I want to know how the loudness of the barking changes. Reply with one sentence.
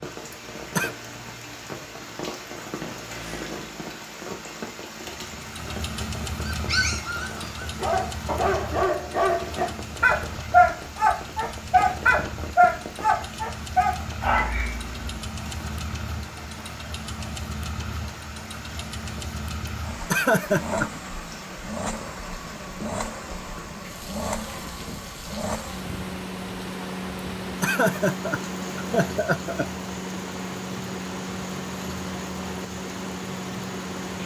The loudness of the barking goes up, then down.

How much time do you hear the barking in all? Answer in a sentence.
You can hear the barking for 9 seconds altogether.